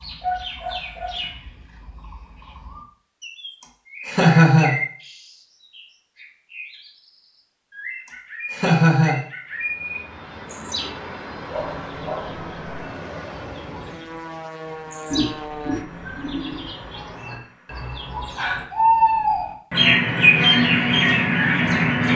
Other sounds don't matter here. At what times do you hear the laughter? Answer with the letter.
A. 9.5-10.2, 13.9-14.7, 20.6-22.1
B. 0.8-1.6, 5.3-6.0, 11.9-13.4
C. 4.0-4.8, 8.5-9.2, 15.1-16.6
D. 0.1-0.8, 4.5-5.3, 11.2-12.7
C.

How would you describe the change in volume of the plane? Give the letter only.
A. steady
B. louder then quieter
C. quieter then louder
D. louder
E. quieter
E.